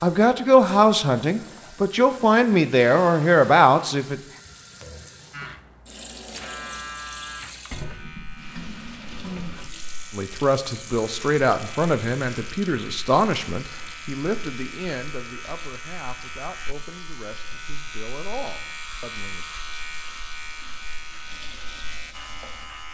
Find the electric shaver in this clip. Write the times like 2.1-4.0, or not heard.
5.3-22.8.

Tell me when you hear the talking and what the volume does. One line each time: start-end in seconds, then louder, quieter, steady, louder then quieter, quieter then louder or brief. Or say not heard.
0.0-4.2 quieter then louder
10.1-19.4 quieter.